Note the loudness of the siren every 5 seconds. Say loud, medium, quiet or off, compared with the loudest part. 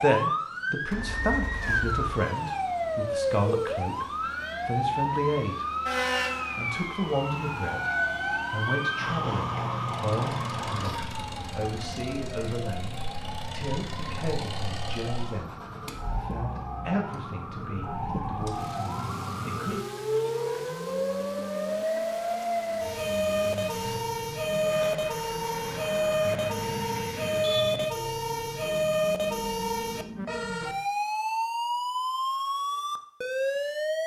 loud, loud, medium, medium, loud, loud, loud.